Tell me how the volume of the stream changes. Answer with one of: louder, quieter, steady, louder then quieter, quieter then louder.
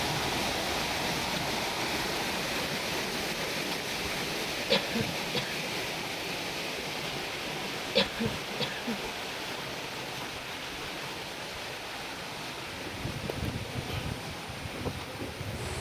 quieter.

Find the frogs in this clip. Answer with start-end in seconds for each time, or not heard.
not heard.